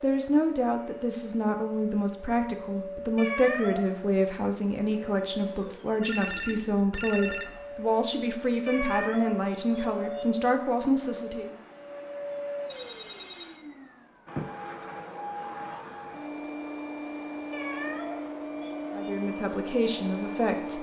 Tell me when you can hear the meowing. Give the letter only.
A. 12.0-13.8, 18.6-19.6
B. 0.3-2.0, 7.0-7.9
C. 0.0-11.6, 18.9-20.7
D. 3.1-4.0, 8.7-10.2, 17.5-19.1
D.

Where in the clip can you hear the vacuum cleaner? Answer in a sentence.
You can hear the vacuum cleaner from 0.0 to 20.7 s.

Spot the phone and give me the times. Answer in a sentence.
You can hear the phone from 6.0 to 7.8 s and from 12.7 to 13.6 s.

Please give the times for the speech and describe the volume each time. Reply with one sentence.
The speech can be heard from 0.0 to 11.6 s, at a steady volume; and briefly from 18.9 to 20.7 s.